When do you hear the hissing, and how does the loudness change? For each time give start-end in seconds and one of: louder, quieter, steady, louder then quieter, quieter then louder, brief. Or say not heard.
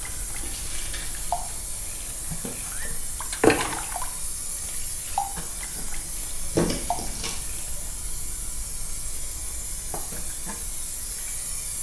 0.0-11.7 steady.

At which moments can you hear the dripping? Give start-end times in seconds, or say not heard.
0.0-7.7.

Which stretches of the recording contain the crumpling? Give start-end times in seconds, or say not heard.
0.4-1.1, 6.5-7.3.